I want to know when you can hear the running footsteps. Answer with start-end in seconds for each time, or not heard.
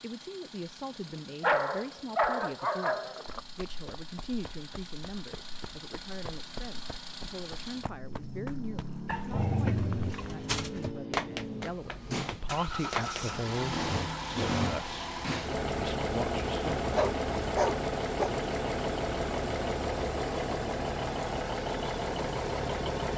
3.2-13.4.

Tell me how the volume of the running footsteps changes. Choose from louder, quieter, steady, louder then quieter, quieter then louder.
louder.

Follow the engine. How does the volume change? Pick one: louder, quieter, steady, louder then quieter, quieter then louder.
louder.